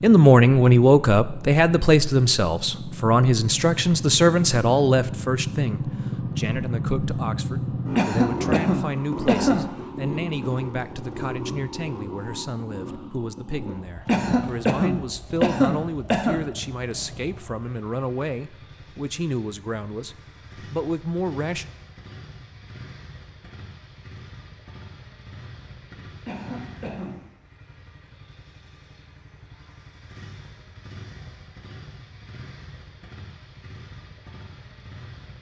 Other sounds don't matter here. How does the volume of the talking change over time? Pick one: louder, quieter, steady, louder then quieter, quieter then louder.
quieter.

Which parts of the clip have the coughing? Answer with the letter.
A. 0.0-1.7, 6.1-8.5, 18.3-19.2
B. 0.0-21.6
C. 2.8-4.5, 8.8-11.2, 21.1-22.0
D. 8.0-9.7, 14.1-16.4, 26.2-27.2
D.